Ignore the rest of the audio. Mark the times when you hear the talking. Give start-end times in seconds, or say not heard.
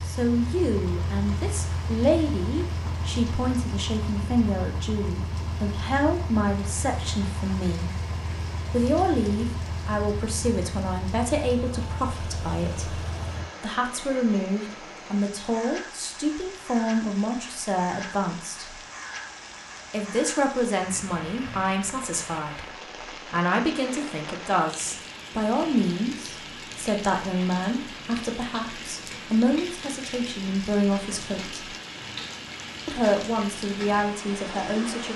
0.0-7.9, 8.7-13.0, 13.6-18.8, 19.9-31.7, 32.9-35.1.